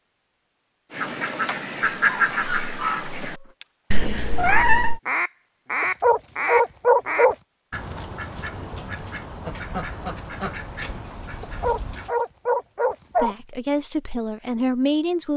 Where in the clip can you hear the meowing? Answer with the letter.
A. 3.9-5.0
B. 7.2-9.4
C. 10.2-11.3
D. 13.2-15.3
A.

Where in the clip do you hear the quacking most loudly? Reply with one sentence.
The loudest moment of the quacking is at 2 seconds.